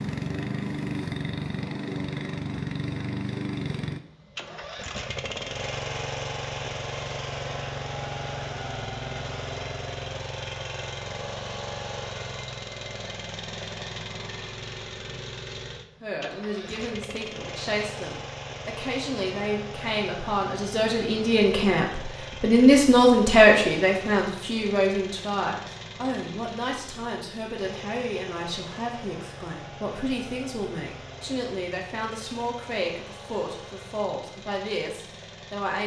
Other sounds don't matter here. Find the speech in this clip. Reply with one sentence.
You can hear the speech from 16.0 to 35.8 s.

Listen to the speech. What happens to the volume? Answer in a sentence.
The loudness of the speech goes up, then down.